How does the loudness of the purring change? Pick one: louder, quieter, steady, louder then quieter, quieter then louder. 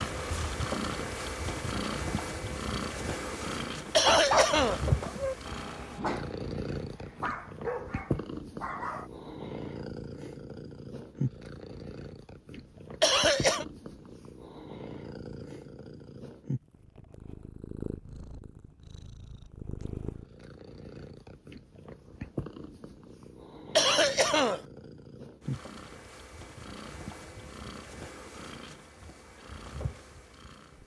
quieter.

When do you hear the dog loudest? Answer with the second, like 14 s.
4 s.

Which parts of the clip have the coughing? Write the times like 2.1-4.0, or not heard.
3.9-4.8, 13.0-13.7, 23.8-24.6.